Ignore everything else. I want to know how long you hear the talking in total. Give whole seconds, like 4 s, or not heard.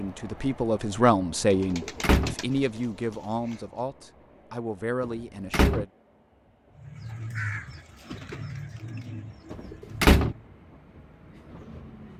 6 s.